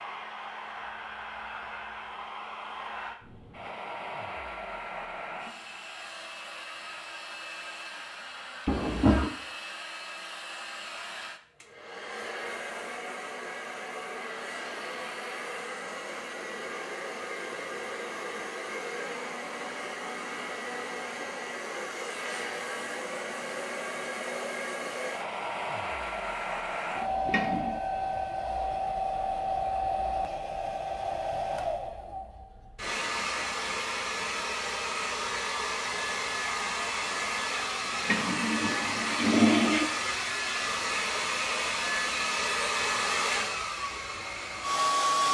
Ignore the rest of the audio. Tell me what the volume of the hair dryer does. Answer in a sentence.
The loudness of the hair dryer goes up.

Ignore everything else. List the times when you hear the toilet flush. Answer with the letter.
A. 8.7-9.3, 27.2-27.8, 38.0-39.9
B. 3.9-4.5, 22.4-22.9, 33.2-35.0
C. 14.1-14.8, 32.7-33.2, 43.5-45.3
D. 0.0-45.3
A.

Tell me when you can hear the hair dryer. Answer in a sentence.
You can hear the hair dryer from 0.0 to 45.3 s.